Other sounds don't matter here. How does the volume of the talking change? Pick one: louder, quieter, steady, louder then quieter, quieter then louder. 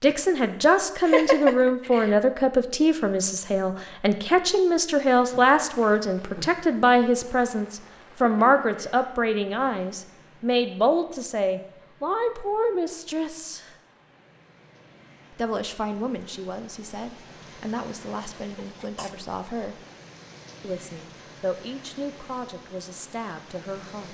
quieter.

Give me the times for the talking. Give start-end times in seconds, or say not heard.
0.0-13.8, 15.3-19.8, 20.6-24.0.